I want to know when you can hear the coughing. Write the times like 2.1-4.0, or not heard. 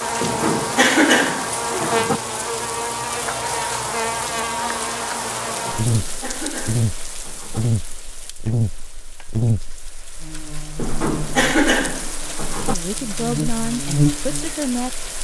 0.2-2.2, 5.7-7.7, 10.8-12.8.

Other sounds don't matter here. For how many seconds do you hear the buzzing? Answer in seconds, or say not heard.
15 s.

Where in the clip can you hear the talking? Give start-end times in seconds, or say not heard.
12.7-15.1.